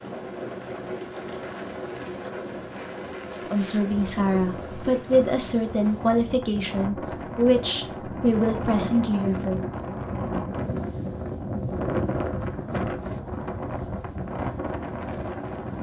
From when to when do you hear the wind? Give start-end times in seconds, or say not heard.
0.0-15.7.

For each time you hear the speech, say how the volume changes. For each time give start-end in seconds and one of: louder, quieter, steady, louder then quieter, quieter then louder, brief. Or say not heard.
3.5-9.6 steady.